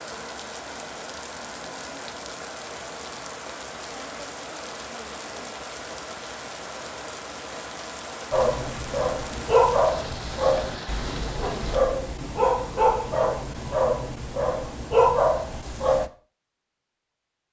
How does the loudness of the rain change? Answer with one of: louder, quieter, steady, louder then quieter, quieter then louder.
steady.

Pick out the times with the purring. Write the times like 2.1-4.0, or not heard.
not heard.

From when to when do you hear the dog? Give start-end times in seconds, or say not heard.
8.3-16.1.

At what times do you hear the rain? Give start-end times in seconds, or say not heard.
0.0-11.8.